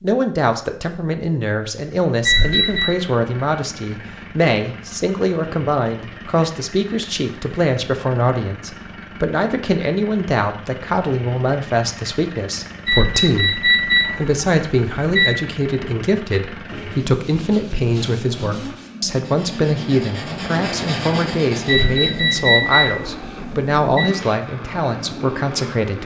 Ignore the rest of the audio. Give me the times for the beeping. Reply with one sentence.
The beeping can be heard from 2.2 to 2.9 s, from 12.8 to 15.3 s and from 21.6 to 24.1 s.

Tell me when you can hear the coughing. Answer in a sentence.
You can't hear the coughing here.